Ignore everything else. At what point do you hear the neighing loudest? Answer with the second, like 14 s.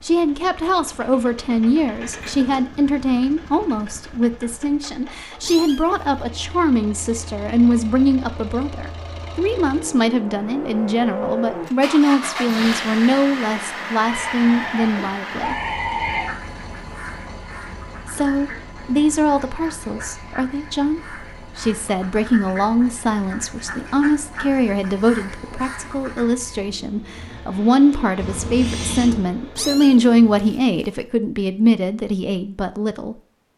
16 s.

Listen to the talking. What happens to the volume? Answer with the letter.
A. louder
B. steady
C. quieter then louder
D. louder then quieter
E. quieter
B.